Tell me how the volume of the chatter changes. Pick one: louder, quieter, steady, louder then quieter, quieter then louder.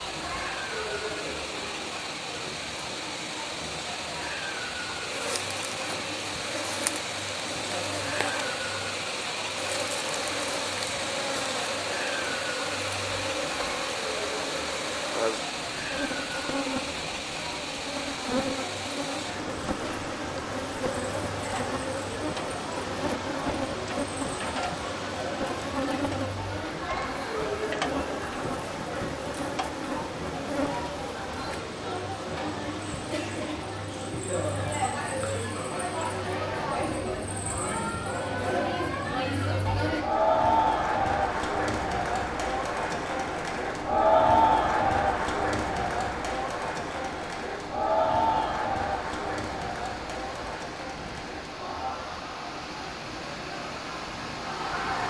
louder.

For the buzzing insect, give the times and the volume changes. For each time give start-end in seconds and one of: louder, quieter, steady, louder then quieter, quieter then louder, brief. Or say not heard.
5.1-31.6 steady.